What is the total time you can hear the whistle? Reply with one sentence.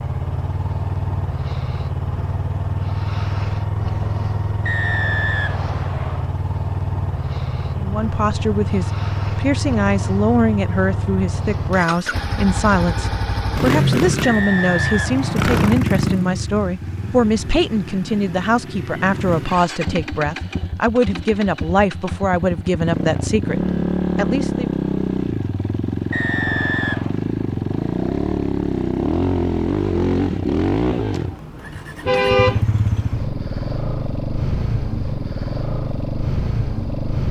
You can hear the whistle for 4 seconds altogether.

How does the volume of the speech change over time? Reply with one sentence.
The volume of the speech stays about the same.